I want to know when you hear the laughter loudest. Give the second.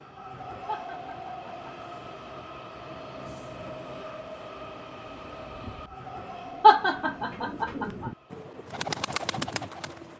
7 s.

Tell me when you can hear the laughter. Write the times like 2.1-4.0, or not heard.
0.7-1.7, 6.6-8.1.